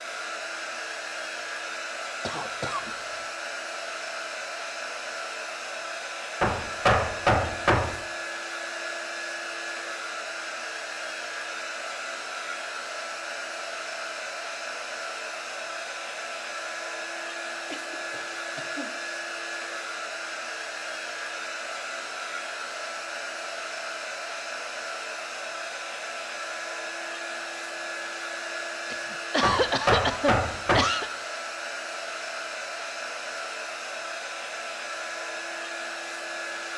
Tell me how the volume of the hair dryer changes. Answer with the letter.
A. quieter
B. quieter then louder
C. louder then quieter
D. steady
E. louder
D.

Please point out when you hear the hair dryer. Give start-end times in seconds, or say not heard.
0.0-36.7.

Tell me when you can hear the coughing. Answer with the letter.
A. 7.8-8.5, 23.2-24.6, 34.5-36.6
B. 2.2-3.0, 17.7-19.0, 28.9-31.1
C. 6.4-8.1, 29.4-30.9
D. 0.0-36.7
B.